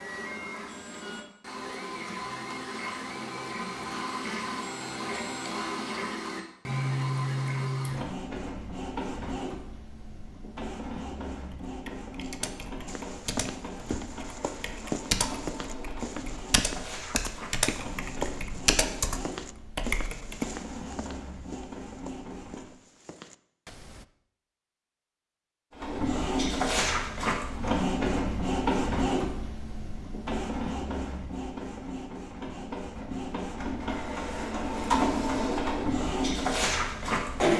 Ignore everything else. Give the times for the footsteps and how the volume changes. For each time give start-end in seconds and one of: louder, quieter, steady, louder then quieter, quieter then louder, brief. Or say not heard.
12.8-24.1 quieter.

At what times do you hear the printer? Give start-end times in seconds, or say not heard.
0.0-22.8, 25.7-37.5.